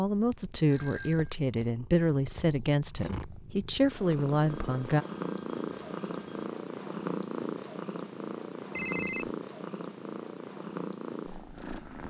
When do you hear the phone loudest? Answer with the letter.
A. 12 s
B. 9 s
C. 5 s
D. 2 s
B.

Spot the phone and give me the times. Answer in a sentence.
You can hear the phone from 0.7 to 1.4 s, from 4.5 to 6.5 s and from 8.7 to 9.3 s.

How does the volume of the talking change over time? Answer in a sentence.
The volume of the talking goes down, then up.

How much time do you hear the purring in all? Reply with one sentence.
The purring can be heard for 12 seconds in total.